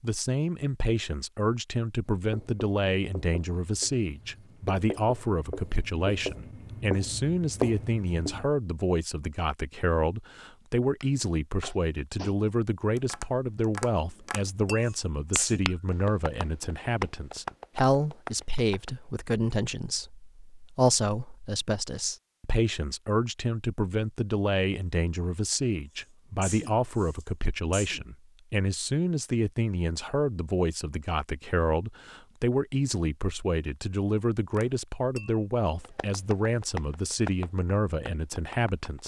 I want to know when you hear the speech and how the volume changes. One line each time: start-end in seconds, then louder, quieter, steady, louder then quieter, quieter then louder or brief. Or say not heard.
0.0-39.0 steady.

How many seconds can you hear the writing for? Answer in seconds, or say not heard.
6 s.